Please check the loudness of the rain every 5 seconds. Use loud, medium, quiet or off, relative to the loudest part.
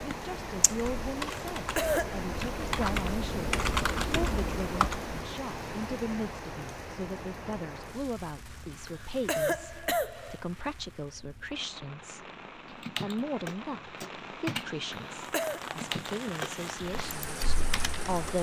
loud, loud, medium, loud.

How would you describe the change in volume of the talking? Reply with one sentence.
The loudness of the talking stays about the same.